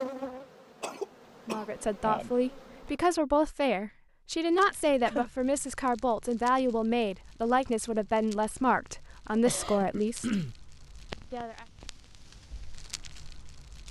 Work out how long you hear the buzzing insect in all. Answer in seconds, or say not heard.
3 s.